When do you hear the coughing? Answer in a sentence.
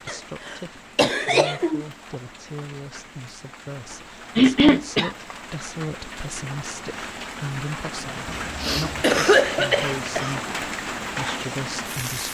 You can hear the coughing from 0.1 to 1.9 s, from 4.3 to 5.1 s and from 8.2 to 10.3 s.